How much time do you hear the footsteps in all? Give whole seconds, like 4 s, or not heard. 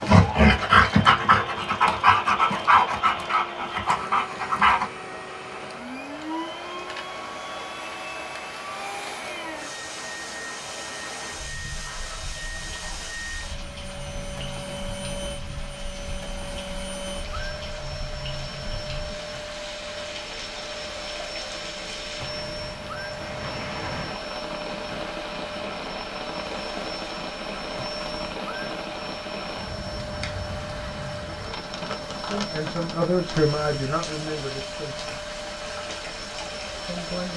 not heard.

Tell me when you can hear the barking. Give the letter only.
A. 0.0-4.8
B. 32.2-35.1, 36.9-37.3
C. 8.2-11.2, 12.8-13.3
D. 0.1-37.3
A.